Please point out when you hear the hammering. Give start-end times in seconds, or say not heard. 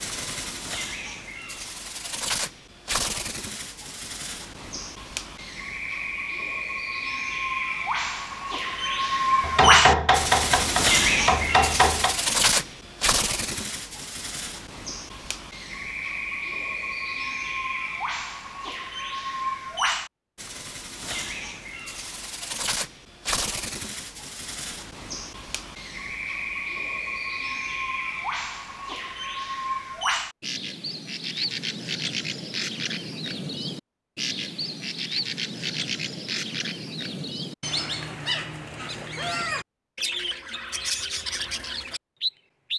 9.4-12.2.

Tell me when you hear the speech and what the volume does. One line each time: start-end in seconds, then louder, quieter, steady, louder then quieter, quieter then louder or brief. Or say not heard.
not heard.